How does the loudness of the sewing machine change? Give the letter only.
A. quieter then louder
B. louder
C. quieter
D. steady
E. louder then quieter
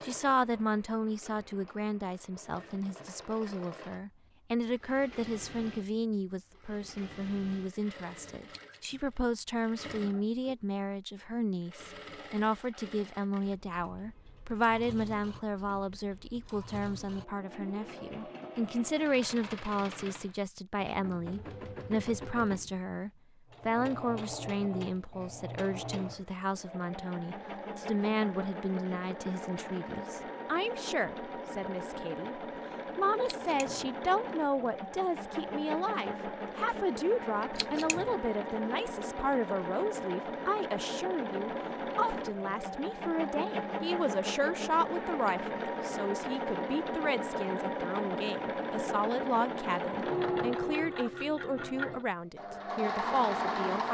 B.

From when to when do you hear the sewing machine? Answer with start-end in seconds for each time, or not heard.
0.0-53.9.